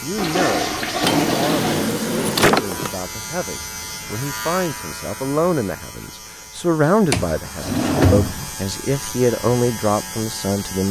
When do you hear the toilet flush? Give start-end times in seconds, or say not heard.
0.1-1.6.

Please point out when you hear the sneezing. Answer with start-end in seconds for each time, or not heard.
not heard.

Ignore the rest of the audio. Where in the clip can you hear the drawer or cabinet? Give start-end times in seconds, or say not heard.
1.0-2.9, 7.1-8.6.